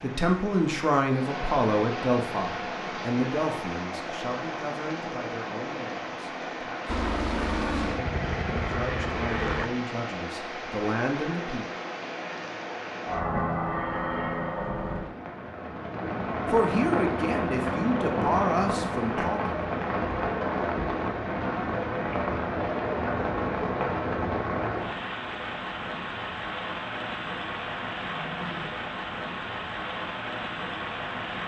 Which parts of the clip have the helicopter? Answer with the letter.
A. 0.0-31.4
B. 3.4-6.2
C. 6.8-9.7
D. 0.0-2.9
C.